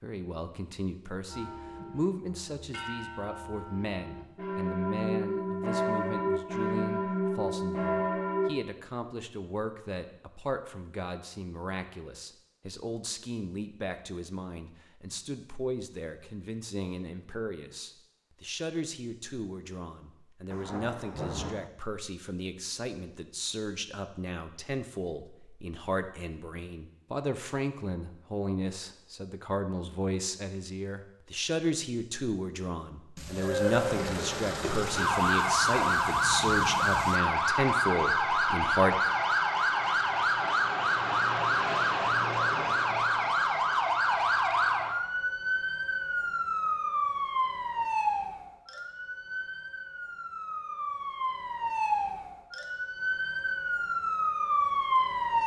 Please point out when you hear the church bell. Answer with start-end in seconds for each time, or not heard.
1.2-8.5.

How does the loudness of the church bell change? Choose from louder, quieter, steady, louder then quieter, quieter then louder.
louder.